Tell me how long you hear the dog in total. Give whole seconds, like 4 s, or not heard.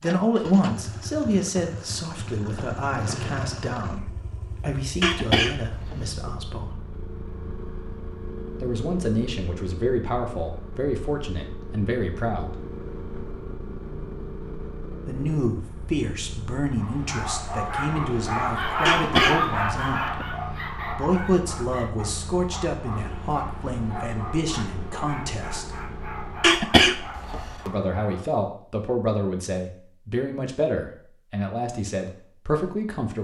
12 s.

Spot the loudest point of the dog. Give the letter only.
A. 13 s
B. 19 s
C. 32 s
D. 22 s
B.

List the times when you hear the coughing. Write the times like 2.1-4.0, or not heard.
5.0-6.1, 18.9-20.2, 26.4-27.6.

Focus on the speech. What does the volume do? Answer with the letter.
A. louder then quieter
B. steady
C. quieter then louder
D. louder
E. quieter
B.